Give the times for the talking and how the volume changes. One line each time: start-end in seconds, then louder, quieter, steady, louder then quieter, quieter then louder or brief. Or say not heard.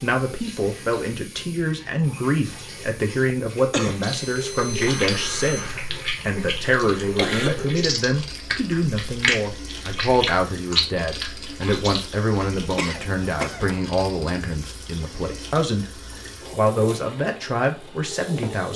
0.0-18.7 steady.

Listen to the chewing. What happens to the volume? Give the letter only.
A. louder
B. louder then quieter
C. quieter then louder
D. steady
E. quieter
B.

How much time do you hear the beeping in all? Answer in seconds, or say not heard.
2 s.